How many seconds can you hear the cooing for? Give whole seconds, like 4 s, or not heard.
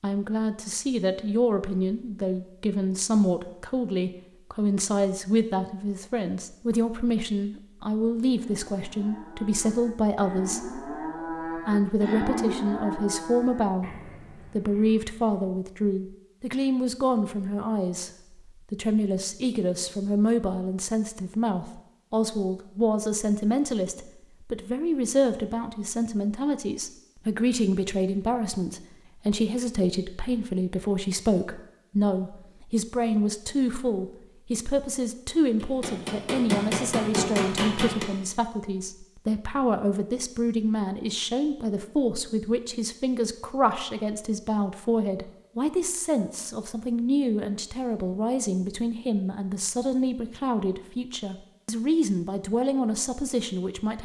not heard.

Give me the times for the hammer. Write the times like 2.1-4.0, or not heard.
35.6-38.1.